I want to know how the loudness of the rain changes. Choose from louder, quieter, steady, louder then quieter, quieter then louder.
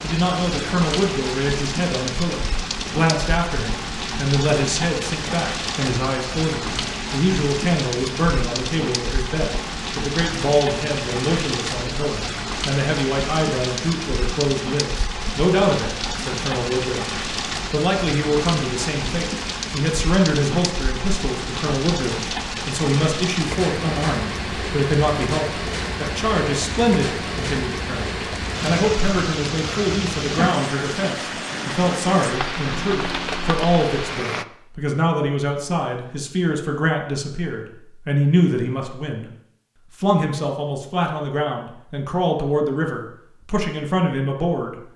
steady.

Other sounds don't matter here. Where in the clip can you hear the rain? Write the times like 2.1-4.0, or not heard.
0.0-34.5.